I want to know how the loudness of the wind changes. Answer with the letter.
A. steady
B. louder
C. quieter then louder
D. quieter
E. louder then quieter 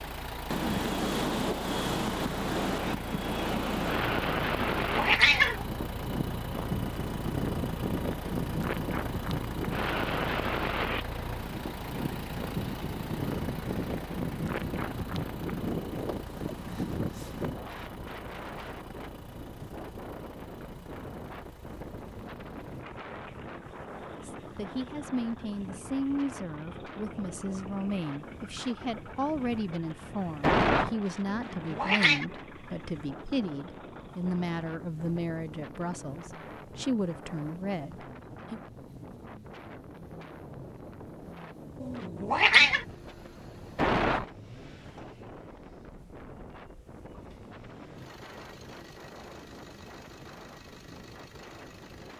C.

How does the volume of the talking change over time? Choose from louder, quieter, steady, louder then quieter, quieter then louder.
steady.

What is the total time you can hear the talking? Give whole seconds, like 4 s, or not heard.
14 s.